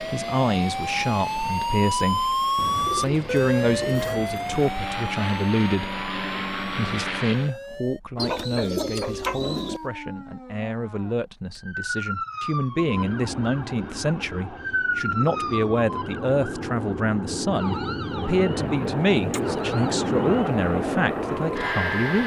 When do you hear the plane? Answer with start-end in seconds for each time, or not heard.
0.0-7.5, 12.7-22.2.